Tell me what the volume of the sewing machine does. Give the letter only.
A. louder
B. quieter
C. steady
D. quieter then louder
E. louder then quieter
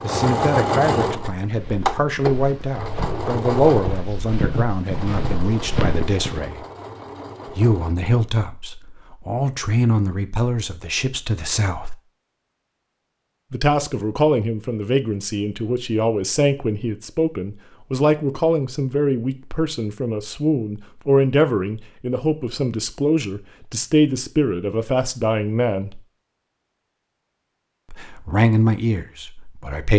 B.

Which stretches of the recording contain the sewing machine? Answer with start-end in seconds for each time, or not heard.
0.0-8.0.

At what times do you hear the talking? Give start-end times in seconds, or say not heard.
0.0-6.7, 7.5-11.9, 13.5-26.0, 27.9-29.9.